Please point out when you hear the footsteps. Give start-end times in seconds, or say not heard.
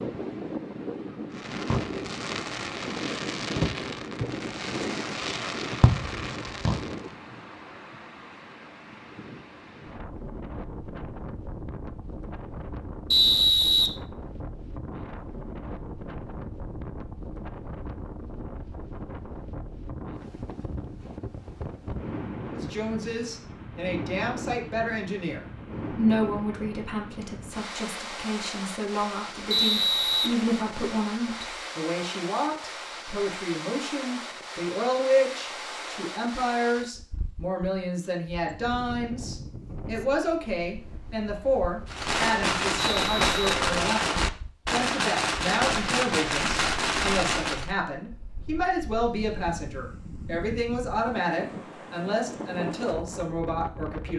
not heard.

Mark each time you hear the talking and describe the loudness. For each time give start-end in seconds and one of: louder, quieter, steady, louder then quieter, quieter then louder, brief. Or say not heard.
22.6-54.1 steady.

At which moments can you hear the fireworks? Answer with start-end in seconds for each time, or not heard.
1.4-7.0, 41.9-47.7.